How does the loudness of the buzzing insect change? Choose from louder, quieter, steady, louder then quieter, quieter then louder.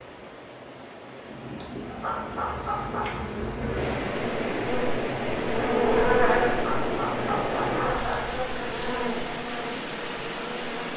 louder then quieter.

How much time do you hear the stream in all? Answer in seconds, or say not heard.
11 s.